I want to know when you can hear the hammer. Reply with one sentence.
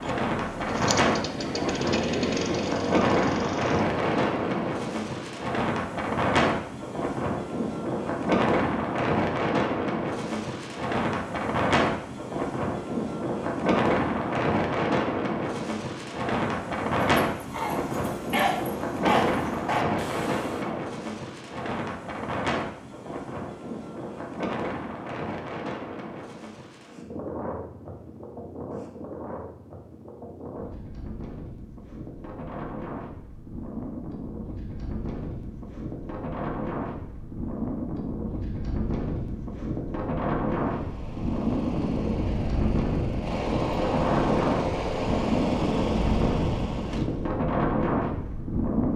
The hammer can't be heard in this clip.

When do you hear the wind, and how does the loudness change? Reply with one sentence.
The wind can be heard from 0.0 to 48.9 s, getting quieter then louder.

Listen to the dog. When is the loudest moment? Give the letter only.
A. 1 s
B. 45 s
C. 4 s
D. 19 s
D.